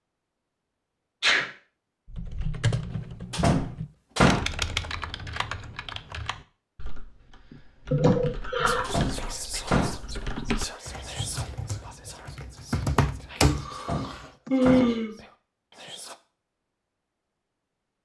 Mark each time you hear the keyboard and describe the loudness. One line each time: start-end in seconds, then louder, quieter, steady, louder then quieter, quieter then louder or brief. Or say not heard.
2.1-14.5 quieter then louder.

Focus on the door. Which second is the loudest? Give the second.
4 s.